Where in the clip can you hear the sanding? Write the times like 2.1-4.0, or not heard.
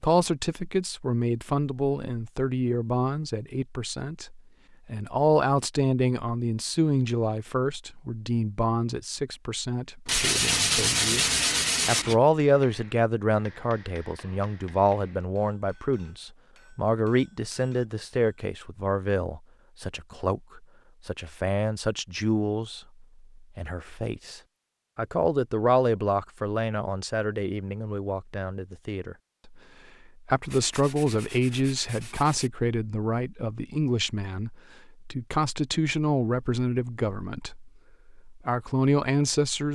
10.1-12.2, 30.4-32.5.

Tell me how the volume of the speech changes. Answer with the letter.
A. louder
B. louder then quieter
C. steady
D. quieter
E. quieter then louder
C.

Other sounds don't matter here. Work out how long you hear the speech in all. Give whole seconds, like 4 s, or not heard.
39 s.